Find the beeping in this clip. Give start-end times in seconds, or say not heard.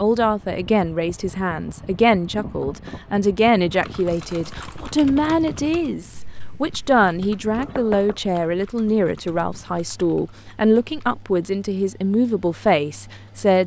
not heard.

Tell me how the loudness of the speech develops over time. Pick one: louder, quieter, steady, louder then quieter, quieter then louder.
steady.